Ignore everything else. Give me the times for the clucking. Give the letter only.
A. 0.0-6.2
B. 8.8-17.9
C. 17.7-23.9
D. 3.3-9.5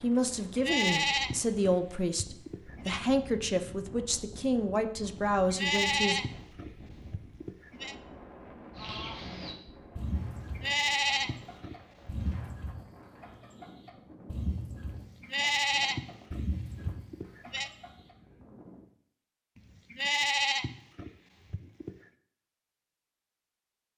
B.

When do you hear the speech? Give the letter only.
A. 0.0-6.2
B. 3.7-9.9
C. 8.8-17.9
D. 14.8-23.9
A.